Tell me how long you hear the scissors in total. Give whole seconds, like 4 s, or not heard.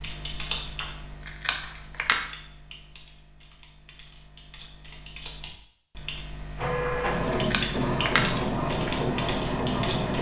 3 s.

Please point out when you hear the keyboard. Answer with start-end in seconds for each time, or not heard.
0.0-10.1.